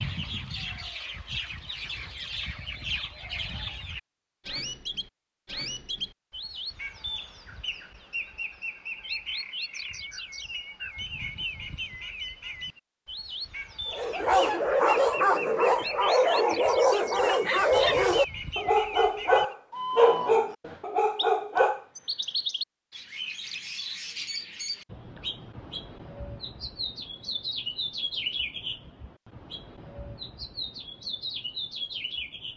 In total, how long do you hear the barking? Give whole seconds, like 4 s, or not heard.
8 s.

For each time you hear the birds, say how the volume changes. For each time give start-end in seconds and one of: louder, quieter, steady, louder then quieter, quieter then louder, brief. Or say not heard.
0.0-32.5 steady.